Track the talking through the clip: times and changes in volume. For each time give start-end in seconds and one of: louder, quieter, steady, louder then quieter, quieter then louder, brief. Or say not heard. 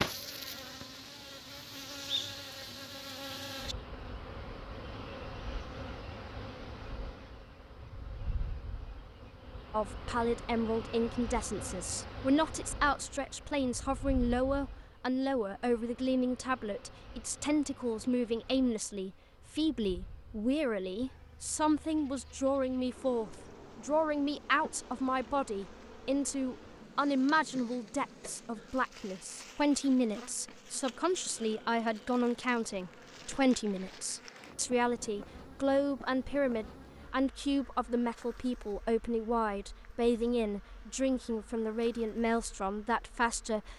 9.7-43.7 steady.